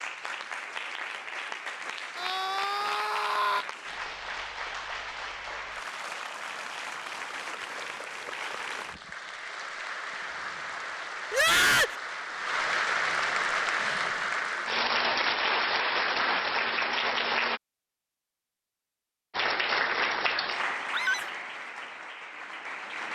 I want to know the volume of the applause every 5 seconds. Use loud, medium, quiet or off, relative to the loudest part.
medium, medium, loud, loud, medium.